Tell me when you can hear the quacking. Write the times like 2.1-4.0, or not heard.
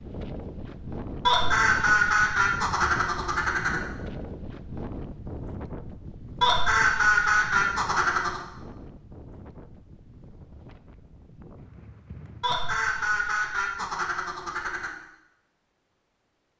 1.2-3.8, 6.4-8.4, 12.4-14.9.